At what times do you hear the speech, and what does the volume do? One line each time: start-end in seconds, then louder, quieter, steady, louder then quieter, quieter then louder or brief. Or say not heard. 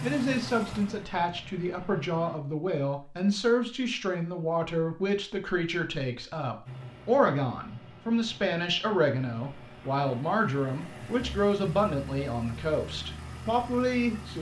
0.0-14.3 steady.